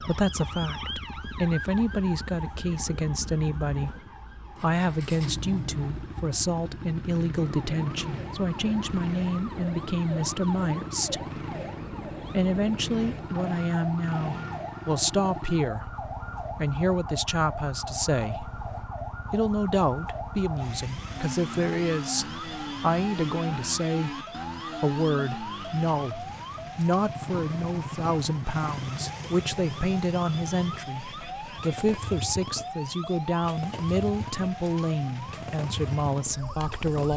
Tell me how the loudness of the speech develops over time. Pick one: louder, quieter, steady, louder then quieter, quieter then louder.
steady.